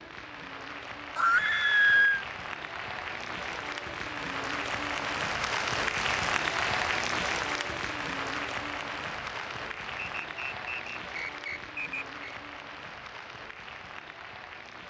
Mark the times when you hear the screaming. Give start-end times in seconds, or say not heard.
1.1-2.2.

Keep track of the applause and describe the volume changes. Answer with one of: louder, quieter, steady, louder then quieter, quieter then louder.
louder then quieter.